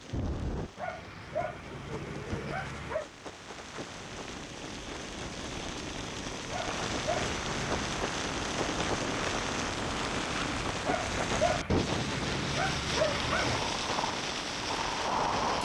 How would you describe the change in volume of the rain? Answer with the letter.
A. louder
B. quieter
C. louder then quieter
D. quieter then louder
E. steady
A.